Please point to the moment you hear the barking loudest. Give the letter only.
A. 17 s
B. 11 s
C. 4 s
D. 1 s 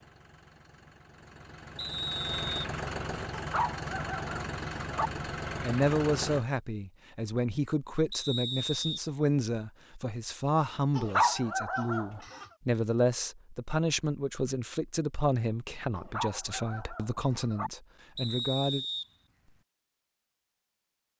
B.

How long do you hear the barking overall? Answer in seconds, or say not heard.
5 s.